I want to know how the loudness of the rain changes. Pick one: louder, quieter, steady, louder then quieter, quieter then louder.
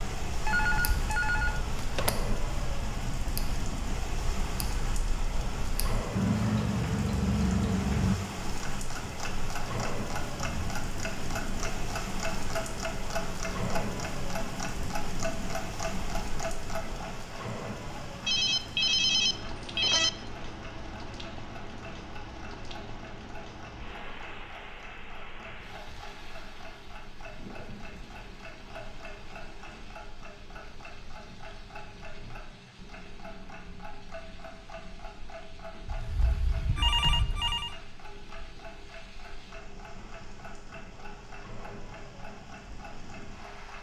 quieter.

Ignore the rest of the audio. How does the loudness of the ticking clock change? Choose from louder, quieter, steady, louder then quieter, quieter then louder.
quieter.